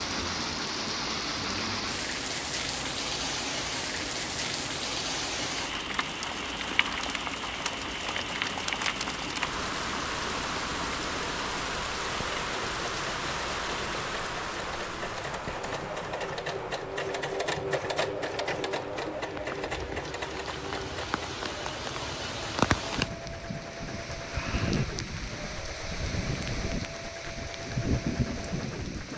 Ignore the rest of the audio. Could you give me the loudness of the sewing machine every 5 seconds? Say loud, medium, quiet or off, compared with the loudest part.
medium, medium, medium, loud, medium, medium.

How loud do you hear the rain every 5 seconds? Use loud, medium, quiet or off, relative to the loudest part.
loud, loud, loud, medium, loud, loud.